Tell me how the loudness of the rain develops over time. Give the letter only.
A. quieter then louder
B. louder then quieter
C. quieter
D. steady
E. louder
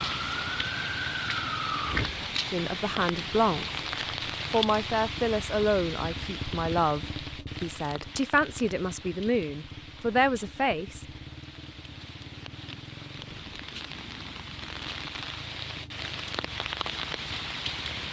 A.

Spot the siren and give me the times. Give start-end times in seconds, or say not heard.
0.0-2.3.